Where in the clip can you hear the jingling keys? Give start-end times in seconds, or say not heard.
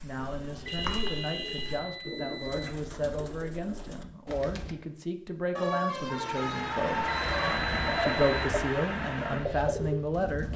not heard.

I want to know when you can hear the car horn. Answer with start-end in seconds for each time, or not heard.
0.1-1.9, 5.5-7.5.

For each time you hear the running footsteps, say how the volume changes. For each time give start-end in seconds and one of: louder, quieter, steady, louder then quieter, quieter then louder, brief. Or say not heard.
not heard.